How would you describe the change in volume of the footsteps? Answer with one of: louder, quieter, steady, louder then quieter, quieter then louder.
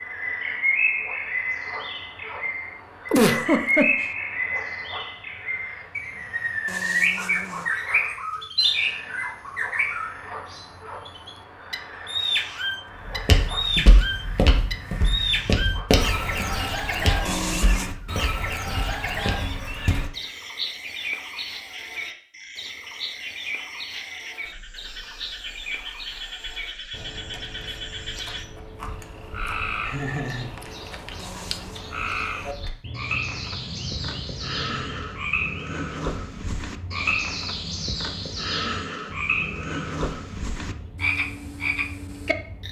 quieter.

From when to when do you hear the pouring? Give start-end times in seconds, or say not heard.
not heard.